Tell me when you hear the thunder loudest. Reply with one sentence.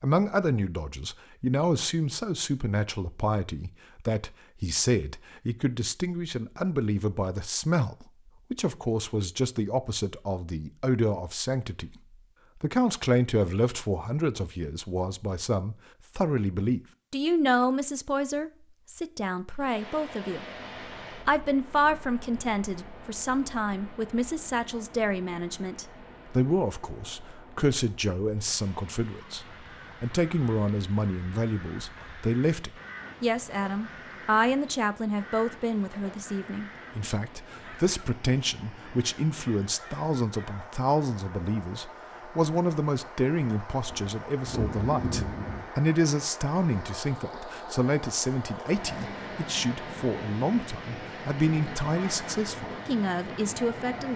The volume of the thunder peaks at 45 seconds.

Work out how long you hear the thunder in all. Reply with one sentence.
The thunder can be heard for 2 seconds in total.